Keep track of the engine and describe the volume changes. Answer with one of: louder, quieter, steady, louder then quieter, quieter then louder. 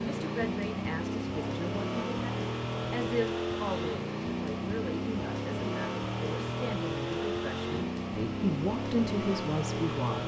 steady.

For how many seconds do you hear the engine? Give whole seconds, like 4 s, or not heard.
10 s.